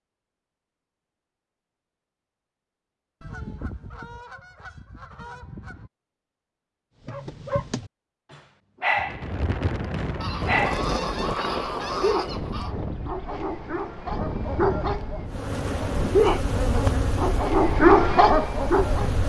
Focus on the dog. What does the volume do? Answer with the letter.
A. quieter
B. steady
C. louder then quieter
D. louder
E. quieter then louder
D.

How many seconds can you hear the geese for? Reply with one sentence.
The geese can be heard for 5 seconds in total.